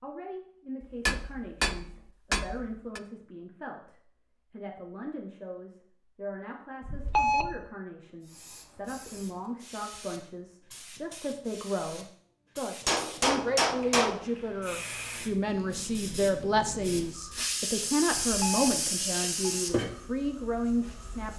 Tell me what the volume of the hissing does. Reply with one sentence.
The loudness of the hissing goes up.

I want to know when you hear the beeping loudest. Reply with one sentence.
The loudest moment of the beeping is at 7 seconds.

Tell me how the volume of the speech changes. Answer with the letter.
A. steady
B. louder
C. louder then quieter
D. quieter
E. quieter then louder
B.